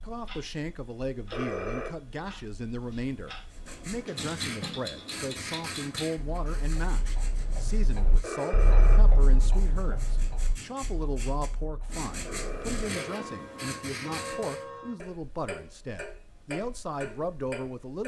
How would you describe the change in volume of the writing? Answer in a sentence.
The loudness of the writing goes down, then up.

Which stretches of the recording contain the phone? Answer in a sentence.
The phone can be heard from 1.3 to 1.9 s, from 8.2 to 9.0 s and from 12.2 to 13.4 s.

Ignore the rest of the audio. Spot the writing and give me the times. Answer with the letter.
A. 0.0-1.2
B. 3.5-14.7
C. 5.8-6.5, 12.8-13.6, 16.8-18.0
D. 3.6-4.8
B.